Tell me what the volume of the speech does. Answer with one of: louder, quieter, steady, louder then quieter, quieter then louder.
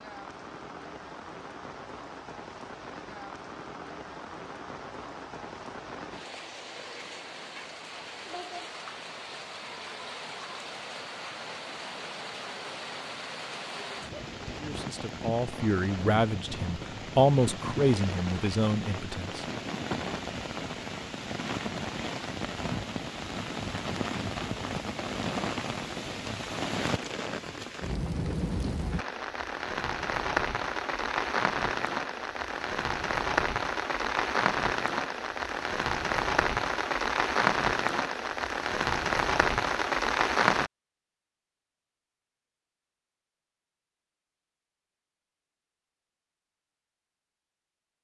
louder then quieter.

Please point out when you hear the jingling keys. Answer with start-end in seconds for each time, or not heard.
not heard.